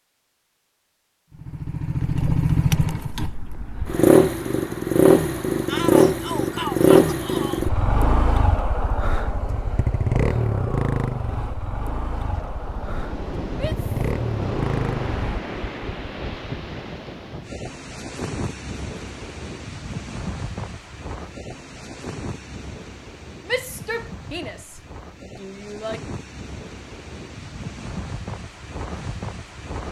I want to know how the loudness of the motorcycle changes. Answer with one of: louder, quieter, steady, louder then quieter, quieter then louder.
quieter.